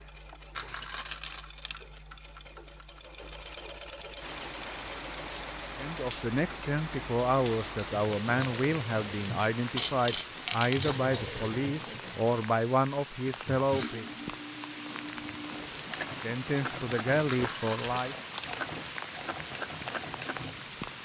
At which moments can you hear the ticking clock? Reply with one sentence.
You can't hear the ticking clock here.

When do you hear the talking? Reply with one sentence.
The talking can be heard from 5.8 to 14.1 s and from 16.1 to 18.1 s.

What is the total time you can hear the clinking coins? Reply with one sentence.
The clinking coins can be heard for 4 seconds in total.